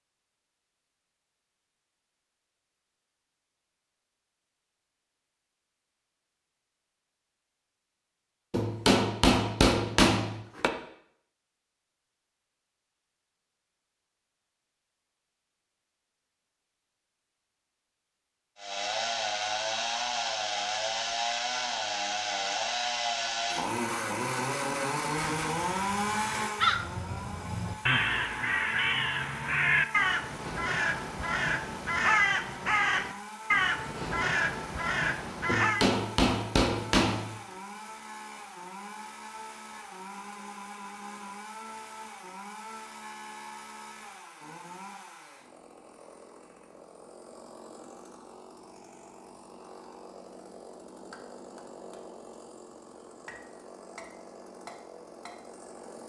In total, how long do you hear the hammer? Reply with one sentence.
You can hear the hammer for 4 seconds altogether.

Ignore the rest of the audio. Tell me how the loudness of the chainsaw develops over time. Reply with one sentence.
The loudness of the chainsaw goes down.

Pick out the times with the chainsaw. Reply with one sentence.
You can hear the chainsaw from 18.6 to 56.0 s.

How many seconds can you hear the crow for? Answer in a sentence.
The crow can be heard for 11 seconds in total.